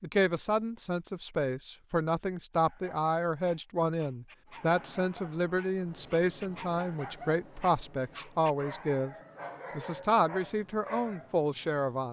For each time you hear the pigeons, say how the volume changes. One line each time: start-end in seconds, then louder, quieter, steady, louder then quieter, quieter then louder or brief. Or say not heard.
not heard.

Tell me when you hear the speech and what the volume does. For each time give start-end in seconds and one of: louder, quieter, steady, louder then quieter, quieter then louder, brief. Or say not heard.
0.0-9.2 steady
9.8-12.0 brief.